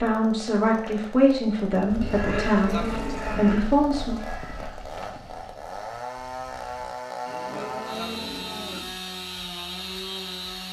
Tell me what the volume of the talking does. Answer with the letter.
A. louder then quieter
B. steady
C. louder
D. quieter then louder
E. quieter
B.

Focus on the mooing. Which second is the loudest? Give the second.
3 s.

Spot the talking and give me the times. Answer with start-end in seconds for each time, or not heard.
0.0-4.2.